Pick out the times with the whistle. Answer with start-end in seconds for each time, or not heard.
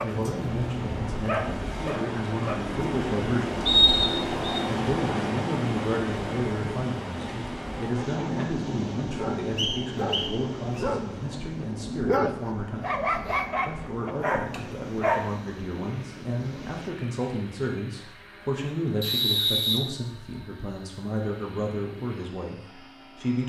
3.6-4.6, 9.6-10.8, 19.0-19.8.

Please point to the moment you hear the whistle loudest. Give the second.
4 s.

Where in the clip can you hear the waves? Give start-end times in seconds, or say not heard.
0.0-16.9.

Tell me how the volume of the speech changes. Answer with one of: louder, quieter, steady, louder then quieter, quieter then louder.
steady.